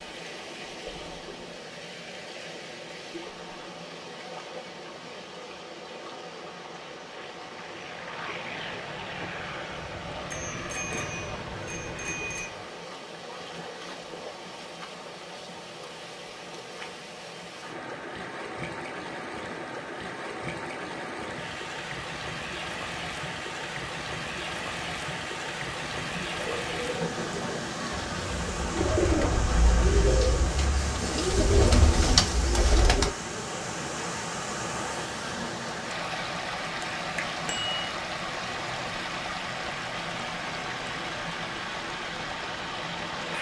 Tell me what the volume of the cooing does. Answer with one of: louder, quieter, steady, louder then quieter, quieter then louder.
louder.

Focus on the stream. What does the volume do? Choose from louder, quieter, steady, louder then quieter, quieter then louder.
louder.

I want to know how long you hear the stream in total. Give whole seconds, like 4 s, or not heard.
43 s.